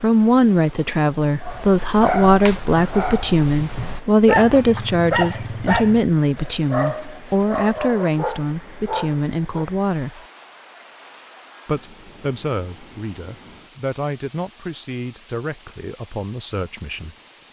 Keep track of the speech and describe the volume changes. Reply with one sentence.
The loudness of the speech goes down.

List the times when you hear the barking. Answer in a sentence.
You can hear the barking from 1.4 to 9.7 s.